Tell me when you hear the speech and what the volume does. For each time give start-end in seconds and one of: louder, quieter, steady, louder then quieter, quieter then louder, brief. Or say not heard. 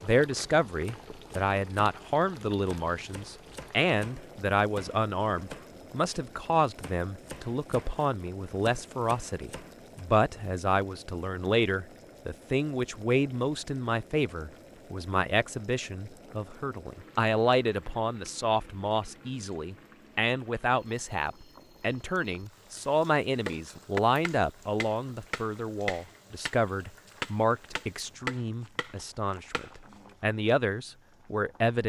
0.0-31.8 steady.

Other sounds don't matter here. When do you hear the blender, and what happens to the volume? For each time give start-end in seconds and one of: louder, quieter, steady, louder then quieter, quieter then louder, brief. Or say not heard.
not heard.